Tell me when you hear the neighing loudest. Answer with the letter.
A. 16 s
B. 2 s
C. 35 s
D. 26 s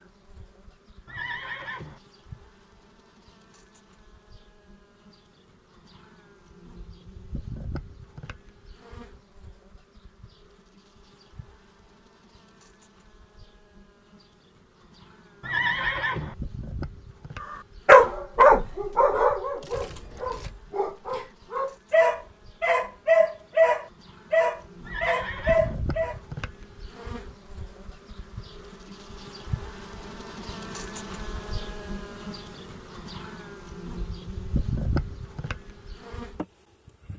A.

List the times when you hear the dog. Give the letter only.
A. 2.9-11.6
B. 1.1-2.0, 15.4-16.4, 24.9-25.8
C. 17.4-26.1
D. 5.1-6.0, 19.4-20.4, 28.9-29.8
C.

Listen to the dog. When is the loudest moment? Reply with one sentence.
The loudest moment of the dog is at 18 seconds.